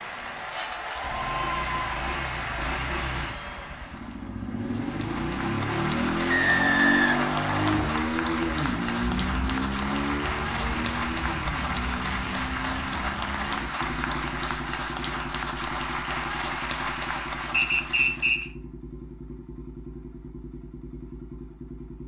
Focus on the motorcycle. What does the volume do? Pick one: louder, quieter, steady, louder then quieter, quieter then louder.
louder then quieter.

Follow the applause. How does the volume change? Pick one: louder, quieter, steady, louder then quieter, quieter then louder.
steady.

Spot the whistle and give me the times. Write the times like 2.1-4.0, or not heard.
6.3-8.0, 17.5-18.5.